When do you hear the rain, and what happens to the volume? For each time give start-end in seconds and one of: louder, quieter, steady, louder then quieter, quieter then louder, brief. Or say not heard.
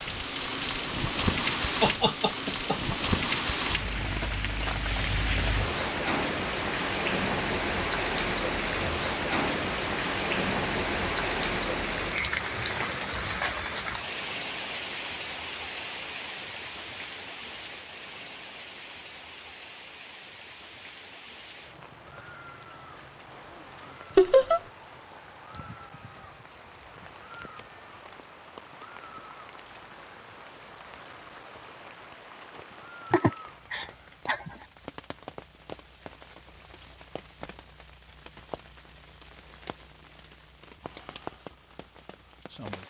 0.0-42.8 quieter.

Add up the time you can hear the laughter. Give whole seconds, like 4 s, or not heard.
3 s.